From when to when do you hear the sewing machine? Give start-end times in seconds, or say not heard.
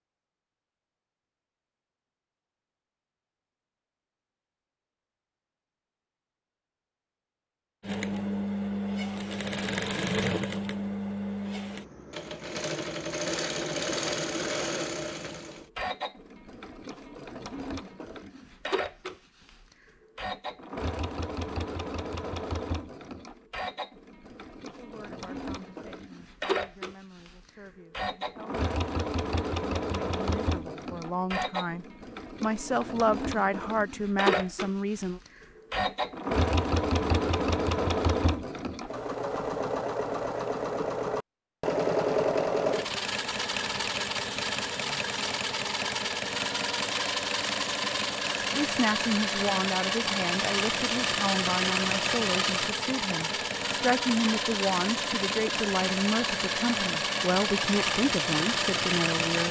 7.8-59.4.